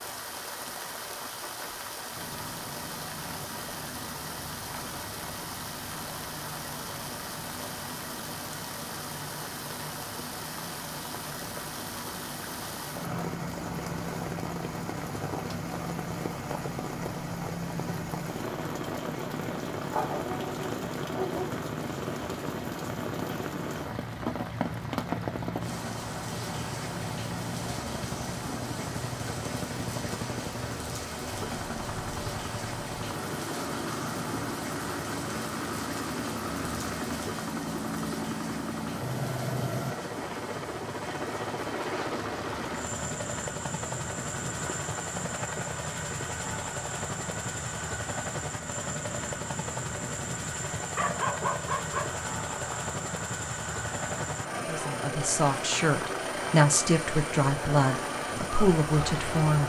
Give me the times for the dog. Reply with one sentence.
The dog can be heard from 19.9 to 21.6 s and from 51.0 to 52.1 s.